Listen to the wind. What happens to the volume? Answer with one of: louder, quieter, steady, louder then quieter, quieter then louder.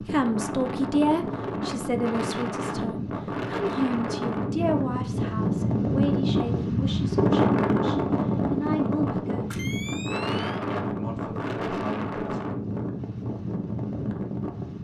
louder then quieter.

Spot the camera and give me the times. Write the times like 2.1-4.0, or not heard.
9.5-10.7.